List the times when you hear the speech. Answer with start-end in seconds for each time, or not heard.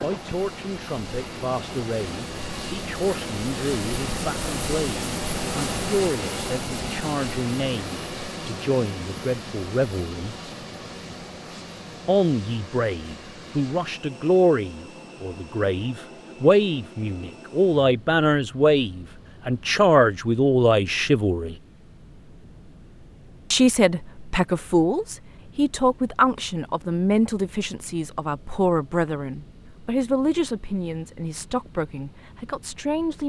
0.0-10.3, 12.1-21.6, 23.5-33.2.